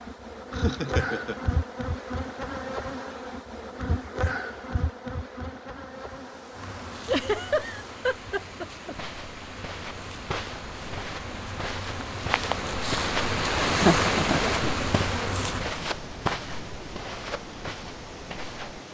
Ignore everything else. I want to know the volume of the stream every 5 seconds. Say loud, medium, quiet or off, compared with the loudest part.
off, quiet, loud, medium.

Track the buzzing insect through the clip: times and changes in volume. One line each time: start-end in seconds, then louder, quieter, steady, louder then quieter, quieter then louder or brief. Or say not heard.
0.0-15.6 quieter then louder.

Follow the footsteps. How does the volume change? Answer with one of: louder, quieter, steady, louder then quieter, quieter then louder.
louder then quieter.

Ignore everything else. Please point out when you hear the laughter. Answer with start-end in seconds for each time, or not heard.
0.5-1.4, 7.0-8.9, 13.8-14.6.